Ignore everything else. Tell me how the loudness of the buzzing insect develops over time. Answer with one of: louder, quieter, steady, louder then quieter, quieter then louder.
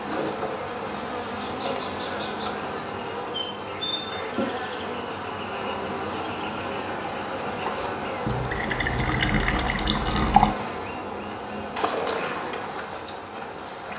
steady.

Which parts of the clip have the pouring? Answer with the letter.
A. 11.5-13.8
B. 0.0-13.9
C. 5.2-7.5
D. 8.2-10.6
D.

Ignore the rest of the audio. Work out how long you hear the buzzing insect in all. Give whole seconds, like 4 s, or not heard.
14 s.